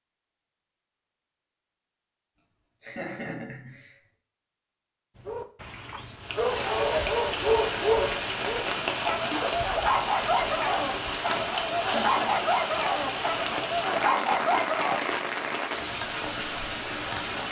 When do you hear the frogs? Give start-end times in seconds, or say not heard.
not heard.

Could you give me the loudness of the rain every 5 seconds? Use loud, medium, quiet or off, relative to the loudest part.
off, loud, loud, loud.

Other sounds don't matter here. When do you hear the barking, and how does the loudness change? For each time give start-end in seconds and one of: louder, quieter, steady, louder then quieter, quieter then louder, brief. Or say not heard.
5.2-15.1 steady.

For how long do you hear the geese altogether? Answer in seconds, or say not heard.
not heard.